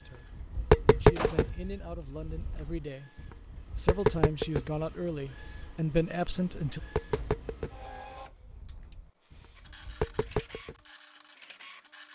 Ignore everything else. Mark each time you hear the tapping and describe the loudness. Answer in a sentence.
The tapping can be heard from 0.3 to 10.8 s, getting quieter then louder.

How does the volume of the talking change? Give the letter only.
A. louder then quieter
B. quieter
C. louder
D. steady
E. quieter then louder
C.